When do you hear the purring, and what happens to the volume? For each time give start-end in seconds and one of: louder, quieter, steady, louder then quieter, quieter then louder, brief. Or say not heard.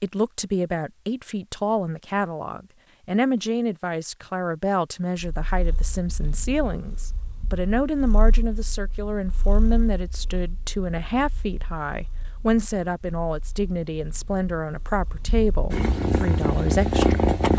5.3-17.5 quieter then louder.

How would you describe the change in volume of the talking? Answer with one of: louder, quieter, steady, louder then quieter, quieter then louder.
steady.